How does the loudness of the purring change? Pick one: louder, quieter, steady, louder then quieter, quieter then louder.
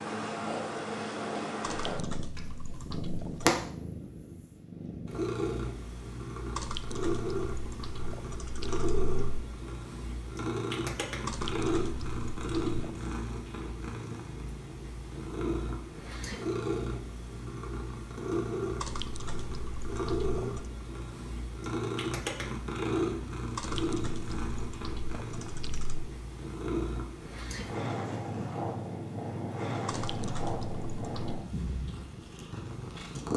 steady.